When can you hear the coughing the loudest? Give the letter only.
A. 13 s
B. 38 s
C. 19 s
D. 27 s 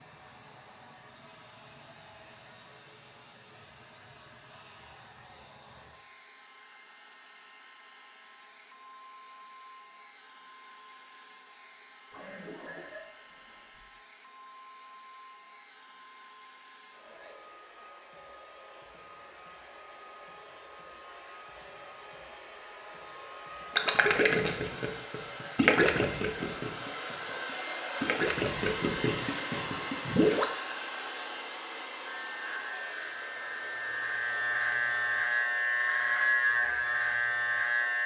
A.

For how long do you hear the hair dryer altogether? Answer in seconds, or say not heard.
38 s.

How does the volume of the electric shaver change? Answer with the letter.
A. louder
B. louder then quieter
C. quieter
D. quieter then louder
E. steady
A.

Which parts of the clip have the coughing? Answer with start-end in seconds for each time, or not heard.
12.1-13.8.